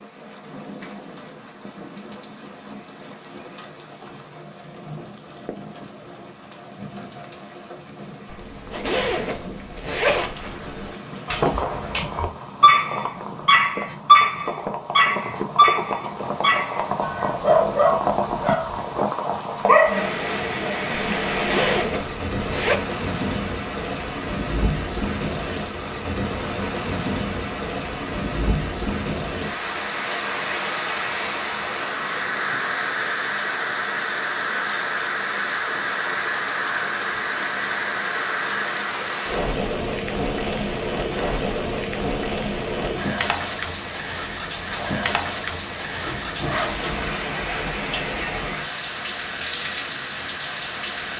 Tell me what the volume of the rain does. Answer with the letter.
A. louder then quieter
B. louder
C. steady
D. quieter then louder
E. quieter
B.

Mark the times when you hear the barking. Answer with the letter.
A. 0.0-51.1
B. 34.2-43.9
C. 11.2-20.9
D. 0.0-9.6
C.